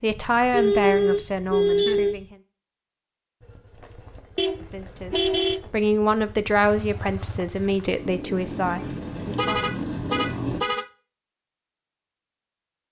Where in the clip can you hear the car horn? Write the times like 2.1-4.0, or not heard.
0.1-2.2, 4.3-5.6, 9.3-10.8.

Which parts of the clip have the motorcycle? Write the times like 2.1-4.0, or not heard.
3.4-10.6.